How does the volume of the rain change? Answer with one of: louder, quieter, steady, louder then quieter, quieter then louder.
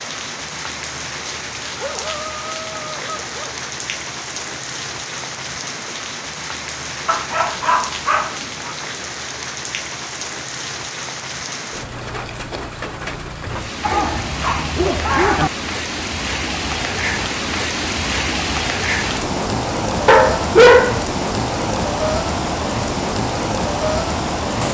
louder.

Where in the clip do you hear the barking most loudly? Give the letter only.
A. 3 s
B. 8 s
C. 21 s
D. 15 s
C.